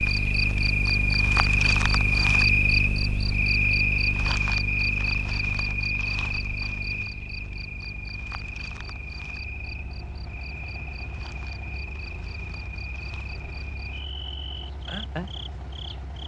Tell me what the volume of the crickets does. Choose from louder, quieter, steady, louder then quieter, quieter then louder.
quieter.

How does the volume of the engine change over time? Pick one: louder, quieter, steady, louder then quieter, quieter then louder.
louder.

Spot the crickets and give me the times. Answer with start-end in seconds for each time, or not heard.
0.0-16.2.